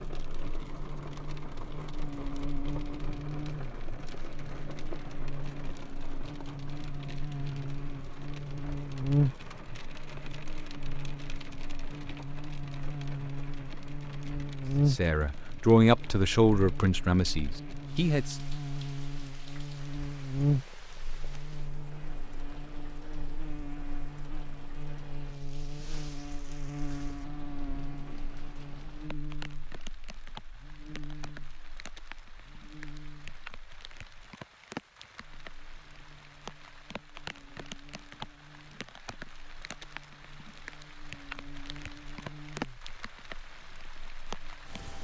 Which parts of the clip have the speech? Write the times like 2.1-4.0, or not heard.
14.8-18.4.